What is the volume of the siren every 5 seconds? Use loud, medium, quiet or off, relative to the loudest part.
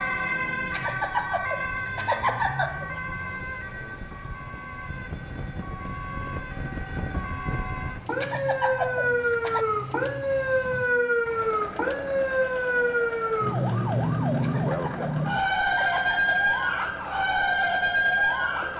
medium, medium, loud, loud.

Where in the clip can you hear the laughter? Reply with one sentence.
The laughter can be heard from 0.7 to 3.0 s, from 8.2 to 9.7 s and from 14.4 to 16.9 s.